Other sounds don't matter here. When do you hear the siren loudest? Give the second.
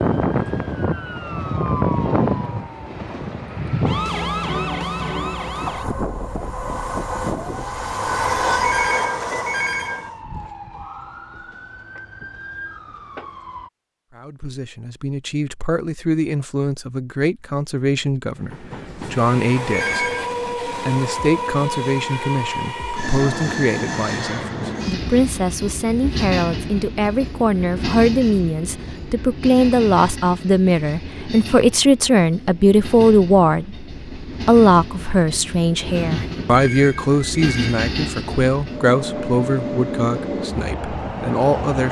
2 s.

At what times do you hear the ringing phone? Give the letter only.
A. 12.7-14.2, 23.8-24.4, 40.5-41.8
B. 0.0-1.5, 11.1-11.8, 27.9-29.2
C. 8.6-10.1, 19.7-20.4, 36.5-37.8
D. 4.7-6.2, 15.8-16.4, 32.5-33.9
C.